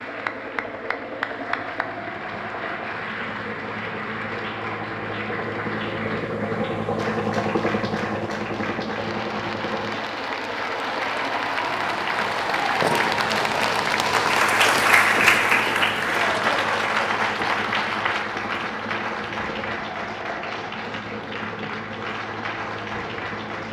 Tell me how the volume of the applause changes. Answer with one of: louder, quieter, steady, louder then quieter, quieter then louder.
louder then quieter.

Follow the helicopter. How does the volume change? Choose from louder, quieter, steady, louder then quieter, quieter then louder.
louder then quieter.